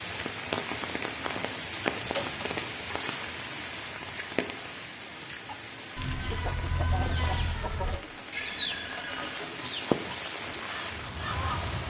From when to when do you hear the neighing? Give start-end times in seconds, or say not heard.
8.3-9.4.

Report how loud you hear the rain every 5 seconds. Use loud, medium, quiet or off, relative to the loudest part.
loud, medium, loud.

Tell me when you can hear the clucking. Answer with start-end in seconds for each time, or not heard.
5.5-11.8.